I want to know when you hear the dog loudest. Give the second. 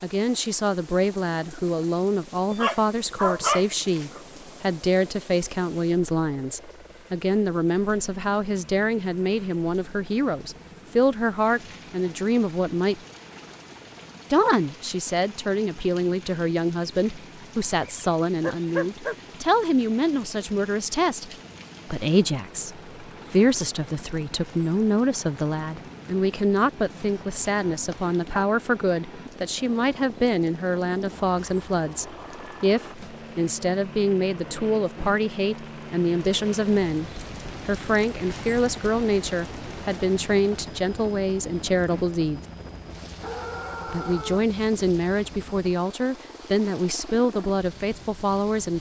3 s.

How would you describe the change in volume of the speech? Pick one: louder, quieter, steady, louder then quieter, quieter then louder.
steady.